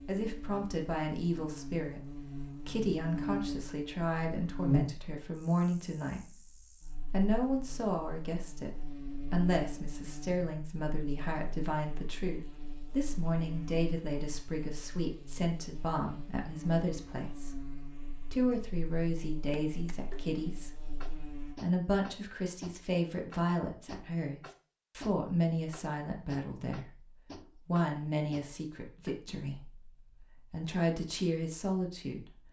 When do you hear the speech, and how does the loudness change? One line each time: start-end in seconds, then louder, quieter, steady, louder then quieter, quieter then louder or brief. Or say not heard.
0.1-32.4 steady.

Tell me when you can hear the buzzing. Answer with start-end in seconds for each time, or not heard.
0.0-21.6.